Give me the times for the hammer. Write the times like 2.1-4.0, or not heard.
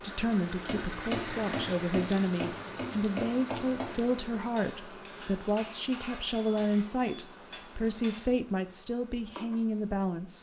0.7-8.3.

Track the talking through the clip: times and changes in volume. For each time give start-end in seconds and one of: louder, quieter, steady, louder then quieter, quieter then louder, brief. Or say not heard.
0.0-10.3 steady.